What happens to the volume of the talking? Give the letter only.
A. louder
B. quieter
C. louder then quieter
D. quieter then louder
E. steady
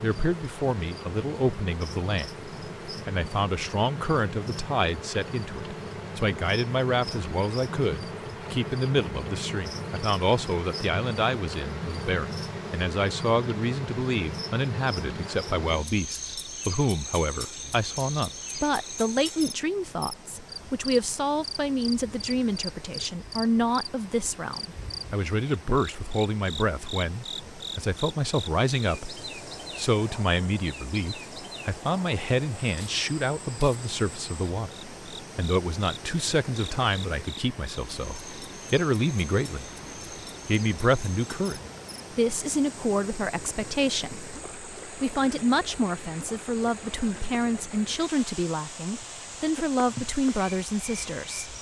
E.